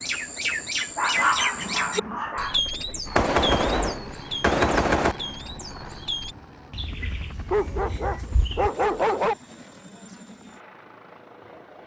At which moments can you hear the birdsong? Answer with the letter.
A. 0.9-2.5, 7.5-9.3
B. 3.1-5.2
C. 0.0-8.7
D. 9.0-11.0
C.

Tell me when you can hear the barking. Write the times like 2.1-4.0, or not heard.
0.9-2.5, 7.5-9.3.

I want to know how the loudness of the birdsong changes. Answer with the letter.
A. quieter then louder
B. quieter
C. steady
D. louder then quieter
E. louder
B.